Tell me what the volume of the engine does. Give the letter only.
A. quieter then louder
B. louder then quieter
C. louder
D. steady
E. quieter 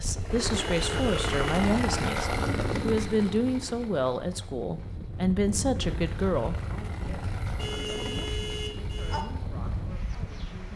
A.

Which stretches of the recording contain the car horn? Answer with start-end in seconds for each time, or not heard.
0.6-1.6, 7.5-9.2.